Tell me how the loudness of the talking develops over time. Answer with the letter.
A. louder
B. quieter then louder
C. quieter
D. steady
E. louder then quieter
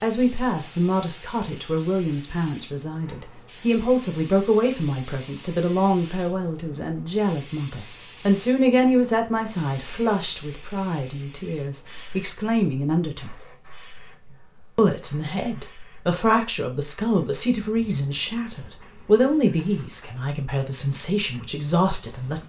D.